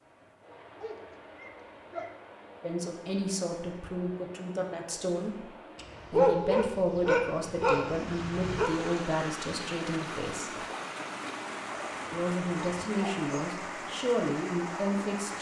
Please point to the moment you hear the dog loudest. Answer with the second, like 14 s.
6 s.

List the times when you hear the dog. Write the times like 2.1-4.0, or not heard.
0.8-2.1, 5.8-8.7, 11.8-13.7.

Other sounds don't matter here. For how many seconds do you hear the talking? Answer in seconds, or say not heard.
11 s.